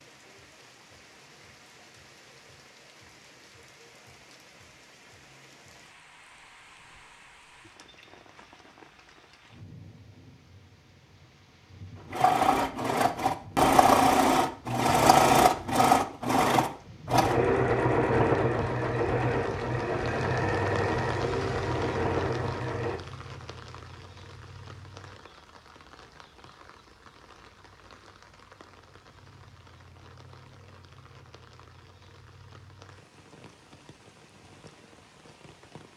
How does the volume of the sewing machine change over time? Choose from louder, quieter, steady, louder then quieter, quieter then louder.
quieter.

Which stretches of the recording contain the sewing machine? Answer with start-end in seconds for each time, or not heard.
12.1-23.0.